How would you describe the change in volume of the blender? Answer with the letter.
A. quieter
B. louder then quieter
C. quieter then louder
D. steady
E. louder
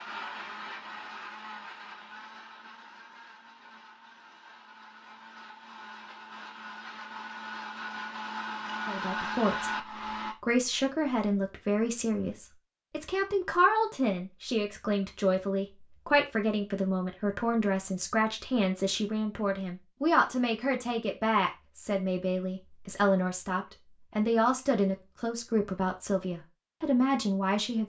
C.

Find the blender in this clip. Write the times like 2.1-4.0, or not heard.
0.0-10.3.